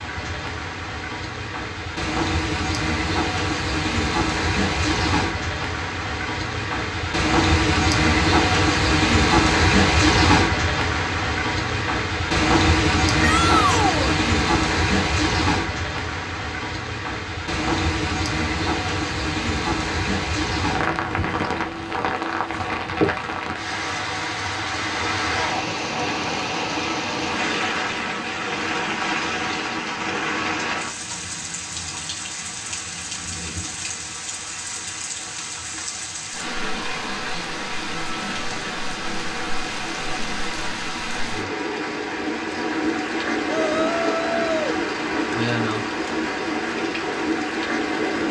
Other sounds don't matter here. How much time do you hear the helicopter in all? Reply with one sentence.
The helicopter can't be heard in this clip.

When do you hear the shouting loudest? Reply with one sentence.
The loudest moment of the shouting is at 14 seconds.